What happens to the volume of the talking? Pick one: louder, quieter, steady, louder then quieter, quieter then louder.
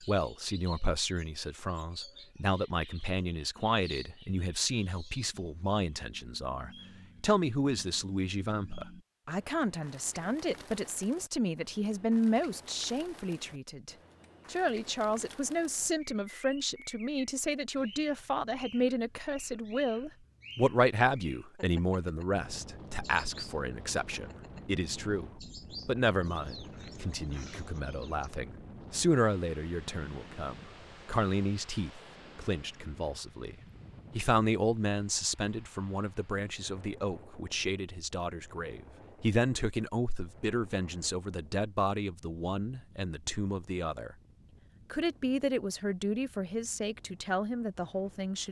steady.